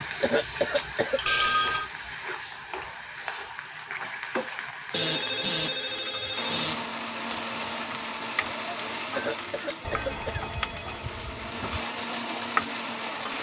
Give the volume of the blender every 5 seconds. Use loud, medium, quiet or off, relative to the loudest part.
off, loud, loud.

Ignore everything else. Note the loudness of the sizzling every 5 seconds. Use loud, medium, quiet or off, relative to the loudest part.
loud, medium, loud.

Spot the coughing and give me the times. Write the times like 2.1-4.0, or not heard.
0.2-1.2, 9.2-10.5.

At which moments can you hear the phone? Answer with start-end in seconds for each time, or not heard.
1.2-1.9, 4.9-6.8, 9.8-11.8.